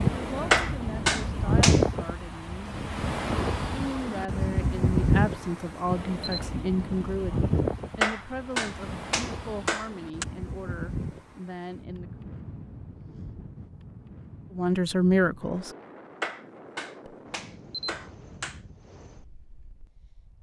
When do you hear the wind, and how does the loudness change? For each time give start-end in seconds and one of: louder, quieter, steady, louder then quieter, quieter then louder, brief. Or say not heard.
0.0-20.3 quieter.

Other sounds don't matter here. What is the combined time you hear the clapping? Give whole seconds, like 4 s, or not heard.
6 s.